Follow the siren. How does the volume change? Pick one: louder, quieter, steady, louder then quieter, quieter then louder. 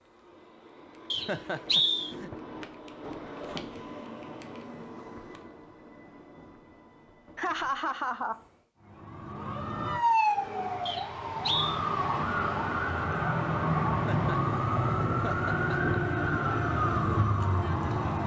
steady.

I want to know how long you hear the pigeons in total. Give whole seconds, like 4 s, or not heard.
not heard.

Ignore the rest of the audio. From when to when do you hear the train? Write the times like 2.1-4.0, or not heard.
0.0-8.7.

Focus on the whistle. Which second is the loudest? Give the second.
2 s.